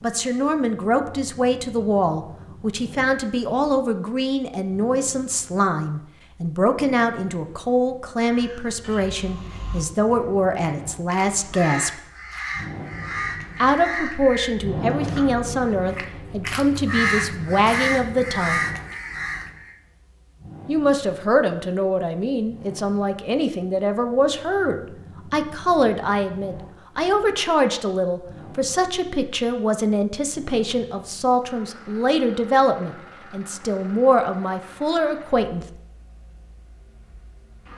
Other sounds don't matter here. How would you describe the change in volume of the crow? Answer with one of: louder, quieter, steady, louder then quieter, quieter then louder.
louder.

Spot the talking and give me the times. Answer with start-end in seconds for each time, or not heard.
0.0-12.0, 13.6-18.6, 20.6-35.6.